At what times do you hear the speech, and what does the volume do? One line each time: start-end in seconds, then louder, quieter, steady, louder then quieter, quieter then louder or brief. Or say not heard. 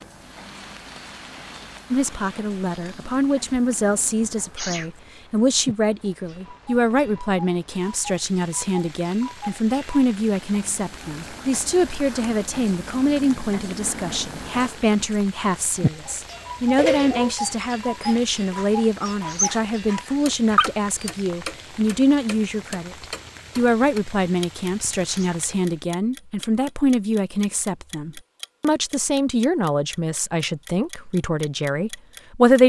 1.9-32.6 steady.